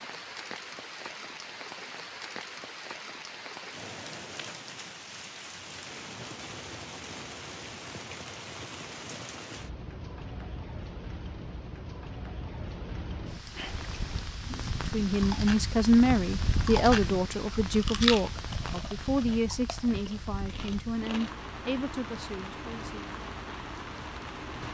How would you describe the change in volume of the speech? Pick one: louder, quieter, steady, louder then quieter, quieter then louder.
quieter.